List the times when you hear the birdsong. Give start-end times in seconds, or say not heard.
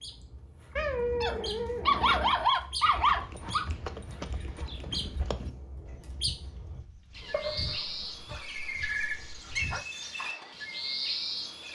0.0-11.7.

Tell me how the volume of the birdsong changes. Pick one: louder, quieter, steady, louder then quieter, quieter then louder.
louder.